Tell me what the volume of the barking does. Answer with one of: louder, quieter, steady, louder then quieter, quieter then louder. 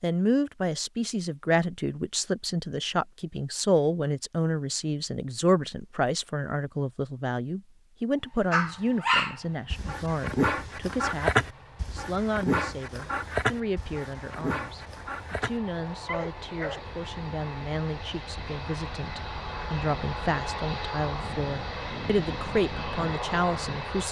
quieter.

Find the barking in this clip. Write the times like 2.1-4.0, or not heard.
8.5-16.8.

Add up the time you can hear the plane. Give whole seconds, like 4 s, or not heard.
16 s.